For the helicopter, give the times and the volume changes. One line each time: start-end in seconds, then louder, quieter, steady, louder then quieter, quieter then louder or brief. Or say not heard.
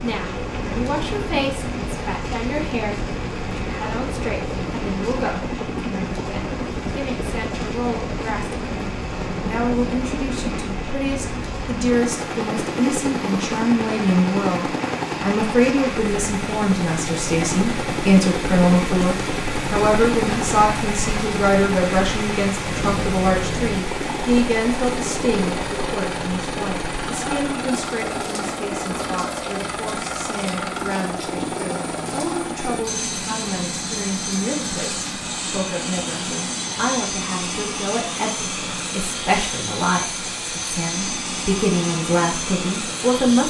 0.0-43.4 steady.